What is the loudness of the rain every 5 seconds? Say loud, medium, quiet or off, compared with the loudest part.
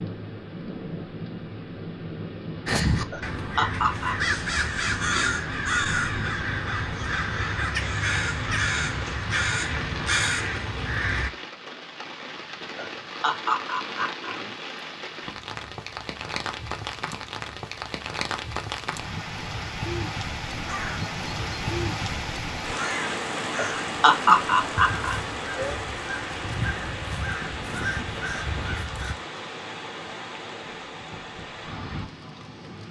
medium, medium, medium, loud, loud, loud, medium.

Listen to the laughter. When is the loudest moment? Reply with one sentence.
The loudest moment of the laughter is at 24 seconds.